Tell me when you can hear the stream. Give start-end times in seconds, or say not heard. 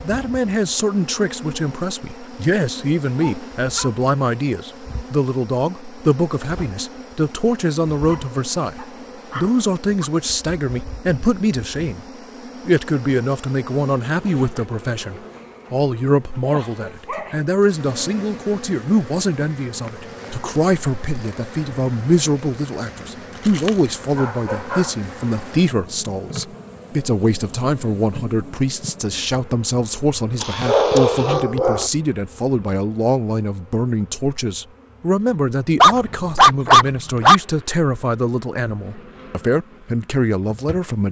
not heard.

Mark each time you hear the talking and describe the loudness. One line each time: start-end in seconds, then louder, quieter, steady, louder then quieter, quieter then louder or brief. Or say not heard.
0.0-12.1 steady
12.7-41.0 steady.